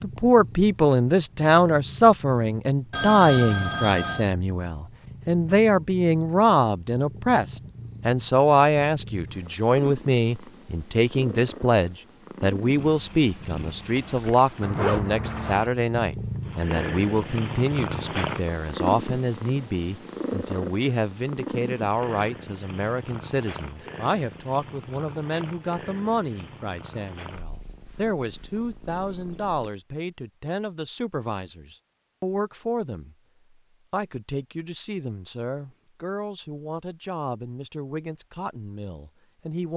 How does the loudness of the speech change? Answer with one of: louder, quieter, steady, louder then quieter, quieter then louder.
quieter.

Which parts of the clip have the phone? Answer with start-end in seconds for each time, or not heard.
2.9-4.3.